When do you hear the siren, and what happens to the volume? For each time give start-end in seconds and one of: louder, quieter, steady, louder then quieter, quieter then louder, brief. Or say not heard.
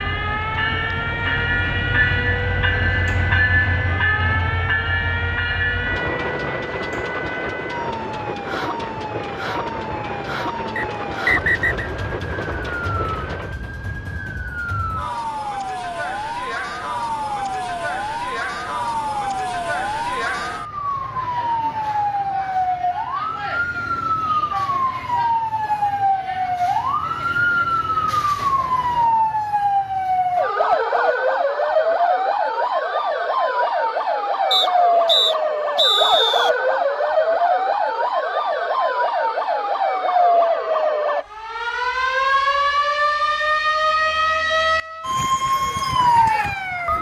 0.0-46.9 louder.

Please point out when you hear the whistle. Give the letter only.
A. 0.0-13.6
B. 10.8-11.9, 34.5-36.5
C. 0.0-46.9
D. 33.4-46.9
B.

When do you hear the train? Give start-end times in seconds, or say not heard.
0.0-13.6.